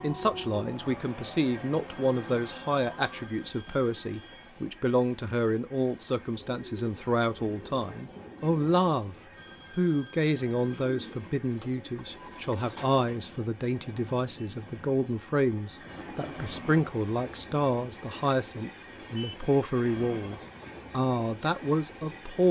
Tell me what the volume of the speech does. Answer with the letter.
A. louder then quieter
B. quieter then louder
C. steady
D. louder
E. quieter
C.